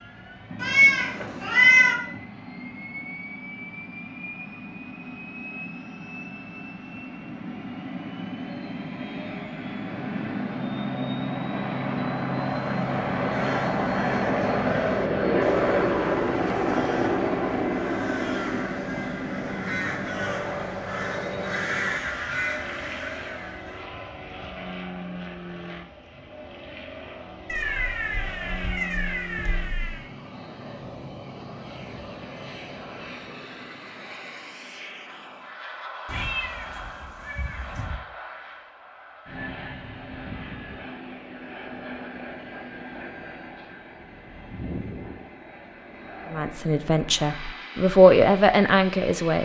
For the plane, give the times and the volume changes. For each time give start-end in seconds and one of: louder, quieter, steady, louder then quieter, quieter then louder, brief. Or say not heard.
0.0-49.4 louder then quieter.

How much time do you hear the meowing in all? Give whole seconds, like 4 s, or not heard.
6 s.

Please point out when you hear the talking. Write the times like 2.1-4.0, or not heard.
46.3-49.4.